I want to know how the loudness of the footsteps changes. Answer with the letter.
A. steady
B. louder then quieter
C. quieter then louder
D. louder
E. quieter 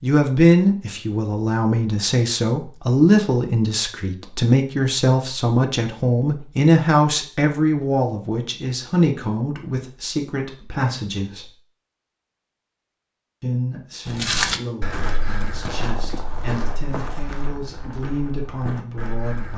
E.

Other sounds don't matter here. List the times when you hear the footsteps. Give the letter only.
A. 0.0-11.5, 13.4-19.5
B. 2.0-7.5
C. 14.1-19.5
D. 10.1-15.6
C.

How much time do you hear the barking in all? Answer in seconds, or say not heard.
not heard.